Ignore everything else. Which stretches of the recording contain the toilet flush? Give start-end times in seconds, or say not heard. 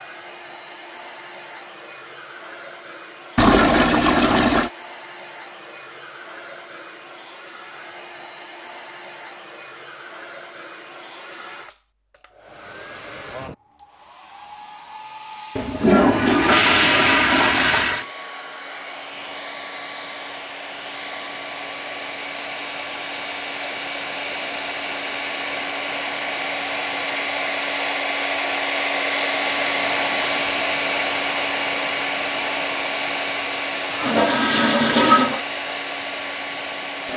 3.4-4.7, 15.6-18.1, 33.9-35.4.